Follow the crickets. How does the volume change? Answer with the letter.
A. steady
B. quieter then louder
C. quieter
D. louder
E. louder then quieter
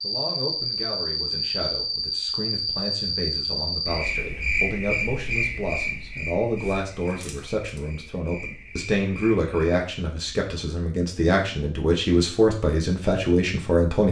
C.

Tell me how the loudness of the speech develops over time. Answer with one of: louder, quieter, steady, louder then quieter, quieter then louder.
louder.